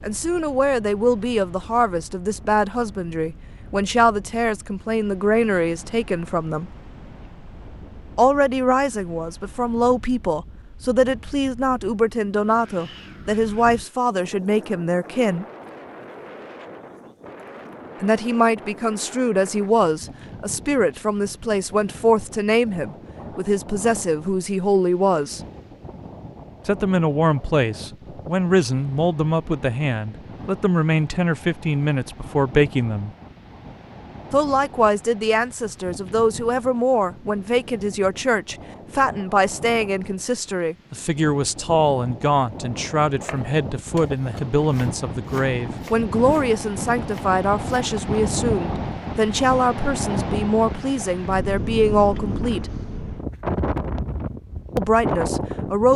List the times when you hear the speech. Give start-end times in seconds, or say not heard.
0.0-6.7, 8.2-15.4, 18.0-25.4, 26.6-33.1, 34.3-52.7, 54.8-55.9.